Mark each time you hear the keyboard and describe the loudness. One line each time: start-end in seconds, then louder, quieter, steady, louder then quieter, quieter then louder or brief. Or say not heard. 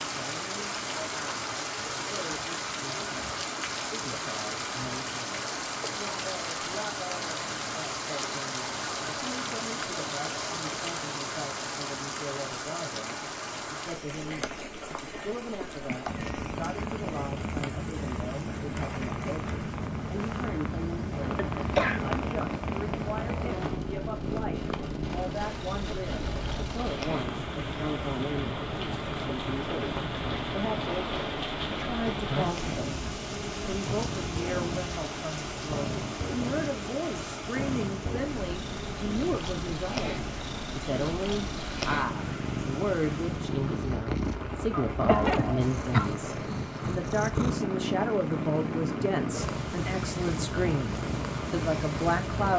not heard.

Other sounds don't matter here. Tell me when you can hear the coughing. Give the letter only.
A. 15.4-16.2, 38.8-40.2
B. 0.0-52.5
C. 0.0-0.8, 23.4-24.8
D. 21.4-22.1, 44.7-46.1
D.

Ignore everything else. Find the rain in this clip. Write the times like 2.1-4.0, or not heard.
0.0-52.5.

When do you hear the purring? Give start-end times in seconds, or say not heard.
16.1-52.5.